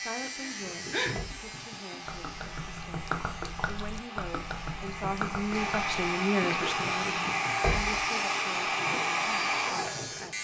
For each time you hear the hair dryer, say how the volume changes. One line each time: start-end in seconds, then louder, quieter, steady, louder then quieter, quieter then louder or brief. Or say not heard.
0.0-10.3 louder.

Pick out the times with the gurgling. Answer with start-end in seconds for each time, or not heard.
0.6-10.3.